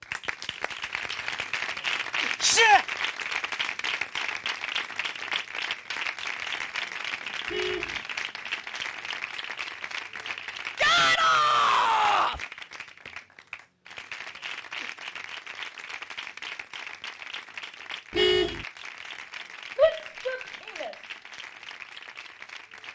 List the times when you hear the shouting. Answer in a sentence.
The shouting can be heard from 2.4 to 2.9 s, from 10.8 to 12.4 s and from 19.8 to 20.9 s.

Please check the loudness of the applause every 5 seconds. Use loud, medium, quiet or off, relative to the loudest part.
loud, loud, medium, medium, medium.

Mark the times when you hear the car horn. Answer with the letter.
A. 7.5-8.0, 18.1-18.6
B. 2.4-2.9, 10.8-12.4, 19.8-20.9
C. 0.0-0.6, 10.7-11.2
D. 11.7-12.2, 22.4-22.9
A.